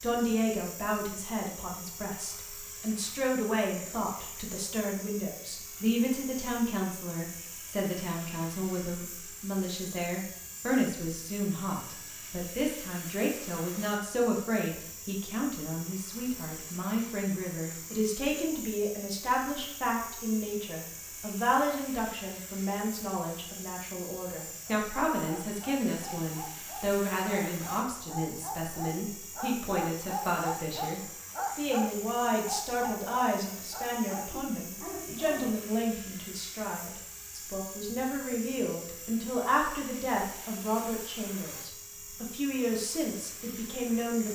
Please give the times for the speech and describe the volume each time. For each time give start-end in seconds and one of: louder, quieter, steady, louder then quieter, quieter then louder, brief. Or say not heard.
0.0-44.3 steady.